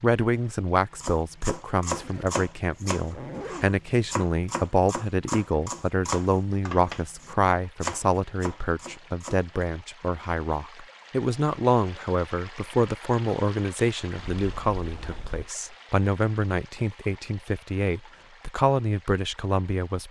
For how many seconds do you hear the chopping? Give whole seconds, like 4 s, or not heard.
9 s.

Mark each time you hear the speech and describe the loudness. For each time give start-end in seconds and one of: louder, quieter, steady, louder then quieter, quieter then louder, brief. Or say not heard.
0.0-20.0 steady.